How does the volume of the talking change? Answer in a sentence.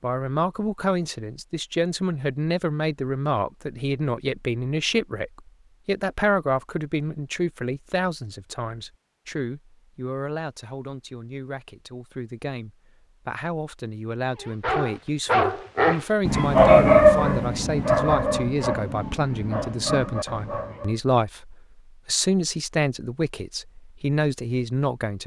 The volume of the talking goes down, then up.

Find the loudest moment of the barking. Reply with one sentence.
The loudest moment of the barking is at 17 seconds.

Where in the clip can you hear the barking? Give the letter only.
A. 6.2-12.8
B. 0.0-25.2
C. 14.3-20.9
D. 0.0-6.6
C.